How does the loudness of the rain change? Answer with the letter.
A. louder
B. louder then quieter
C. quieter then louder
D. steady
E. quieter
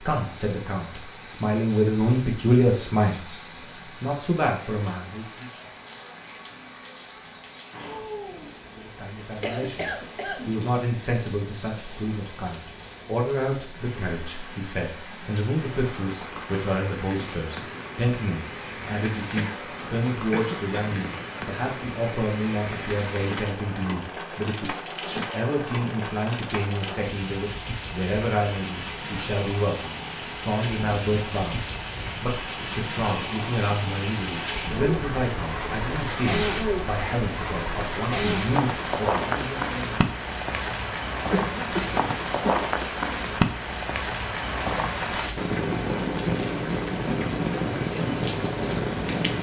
A.